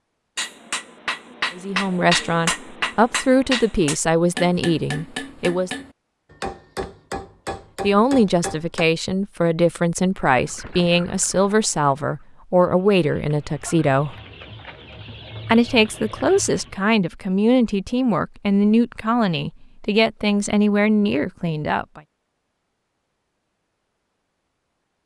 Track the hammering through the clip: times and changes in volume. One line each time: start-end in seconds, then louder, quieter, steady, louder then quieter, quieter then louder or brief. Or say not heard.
0.3-8.8 quieter.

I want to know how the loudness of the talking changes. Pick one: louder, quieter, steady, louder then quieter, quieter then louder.
steady.